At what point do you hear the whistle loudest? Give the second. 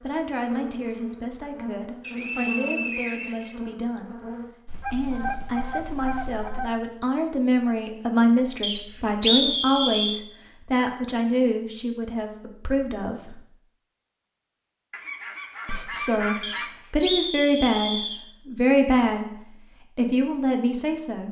9 s.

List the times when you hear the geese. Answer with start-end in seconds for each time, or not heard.
4.7-6.7, 14.9-16.8.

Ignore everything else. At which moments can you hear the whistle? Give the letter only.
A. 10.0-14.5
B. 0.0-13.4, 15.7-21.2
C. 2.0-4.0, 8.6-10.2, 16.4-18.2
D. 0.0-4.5
C.